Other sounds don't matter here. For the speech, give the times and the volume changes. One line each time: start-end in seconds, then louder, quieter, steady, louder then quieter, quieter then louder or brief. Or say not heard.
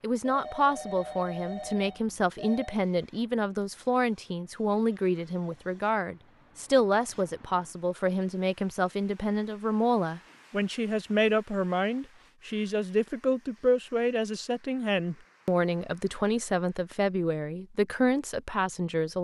0.0-19.1 steady.